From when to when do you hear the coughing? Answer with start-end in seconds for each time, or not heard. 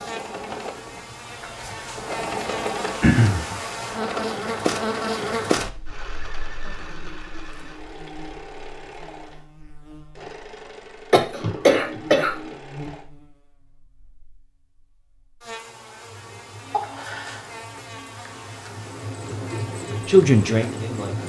3.0-3.5, 11.1-12.5, 16.7-17.5.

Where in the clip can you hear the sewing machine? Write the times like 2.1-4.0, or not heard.
0.0-13.1, 16.1-21.2.